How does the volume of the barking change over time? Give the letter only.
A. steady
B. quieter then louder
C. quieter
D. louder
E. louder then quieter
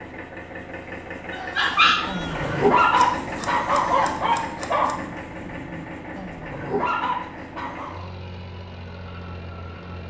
B.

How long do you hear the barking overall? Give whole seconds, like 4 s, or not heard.
7 s.